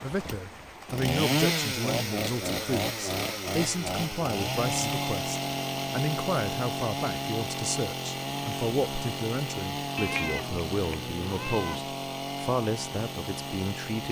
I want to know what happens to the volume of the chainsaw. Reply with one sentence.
The volume of the chainsaw goes down.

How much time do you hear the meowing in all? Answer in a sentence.
You can hear the meowing for 2 seconds altogether.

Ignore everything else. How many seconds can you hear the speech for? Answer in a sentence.
The speech can be heard for 14 seconds in total.